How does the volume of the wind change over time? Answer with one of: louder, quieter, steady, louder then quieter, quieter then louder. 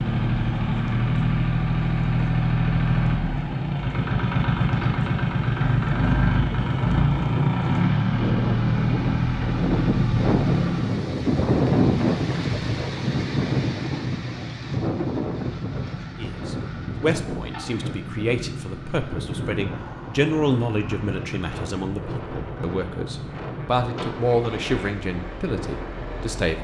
louder then quieter.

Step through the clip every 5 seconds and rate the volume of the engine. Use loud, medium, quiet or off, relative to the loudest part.
loud, loud, medium, quiet, quiet, quiet.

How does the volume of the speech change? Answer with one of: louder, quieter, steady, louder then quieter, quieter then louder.
steady.